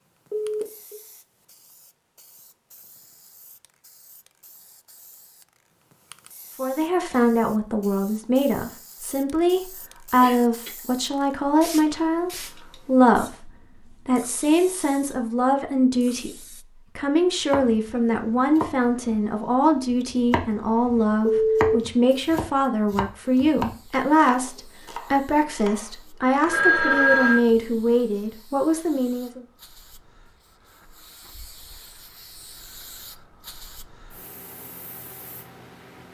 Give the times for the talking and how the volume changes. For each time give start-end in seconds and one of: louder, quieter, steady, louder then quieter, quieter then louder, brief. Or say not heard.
6.5-29.4 steady.